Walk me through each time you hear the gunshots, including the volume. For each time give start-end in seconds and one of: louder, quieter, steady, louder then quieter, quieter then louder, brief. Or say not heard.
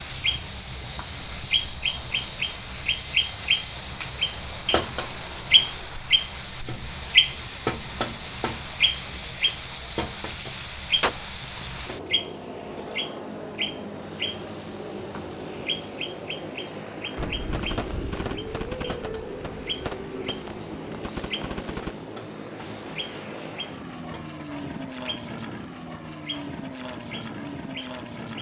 10.3-11.2 brief
17.1-22.1 quieter then louder.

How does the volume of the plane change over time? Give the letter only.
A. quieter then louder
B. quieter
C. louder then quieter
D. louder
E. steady
E.